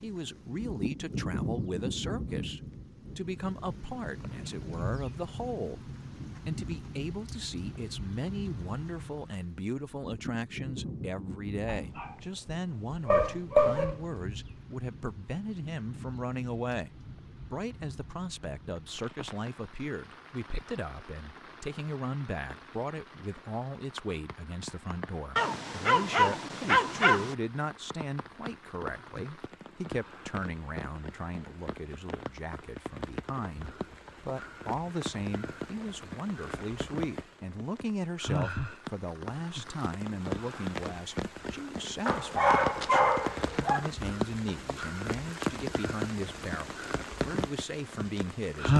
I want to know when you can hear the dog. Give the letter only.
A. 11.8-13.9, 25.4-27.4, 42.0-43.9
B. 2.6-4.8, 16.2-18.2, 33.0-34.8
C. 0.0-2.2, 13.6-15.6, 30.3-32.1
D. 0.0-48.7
A.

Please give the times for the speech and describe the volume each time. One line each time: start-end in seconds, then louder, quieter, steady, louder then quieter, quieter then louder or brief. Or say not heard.
0.0-48.7 steady.